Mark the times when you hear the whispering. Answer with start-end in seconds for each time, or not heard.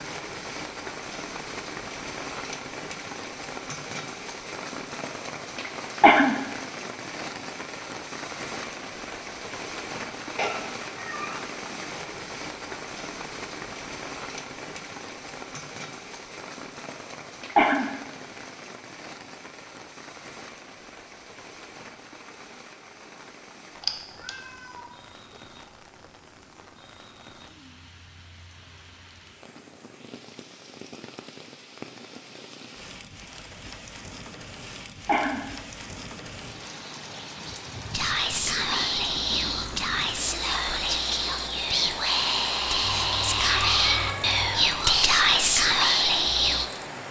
37.9-46.7.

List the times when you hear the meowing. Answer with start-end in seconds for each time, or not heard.
10.3-11.4, 23.8-24.9, 42.8-44.6.